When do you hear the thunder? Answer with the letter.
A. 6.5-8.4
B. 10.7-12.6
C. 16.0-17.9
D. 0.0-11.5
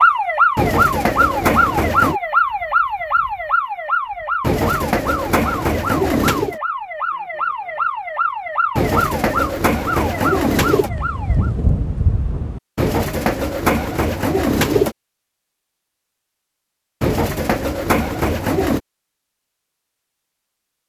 B.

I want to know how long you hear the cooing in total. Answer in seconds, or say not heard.
10 s.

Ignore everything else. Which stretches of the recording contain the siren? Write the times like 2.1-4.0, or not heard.
0.0-11.5.